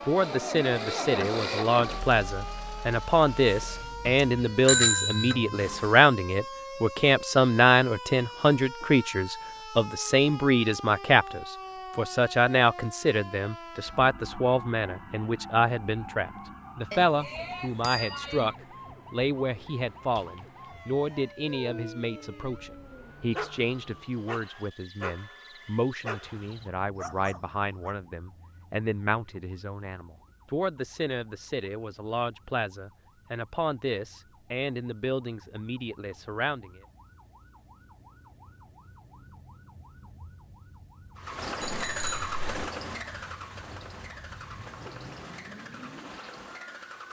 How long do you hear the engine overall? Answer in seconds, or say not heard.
12 s.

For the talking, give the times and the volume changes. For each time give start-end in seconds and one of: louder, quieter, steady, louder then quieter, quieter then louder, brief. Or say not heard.
0.1-36.8 quieter.